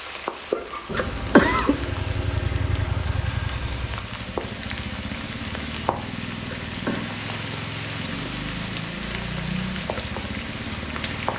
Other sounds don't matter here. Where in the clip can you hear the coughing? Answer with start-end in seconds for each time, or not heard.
0.9-1.8, 6.4-7.0.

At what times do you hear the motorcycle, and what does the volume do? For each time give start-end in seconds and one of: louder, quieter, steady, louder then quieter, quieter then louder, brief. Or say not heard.
0.0-11.3 steady.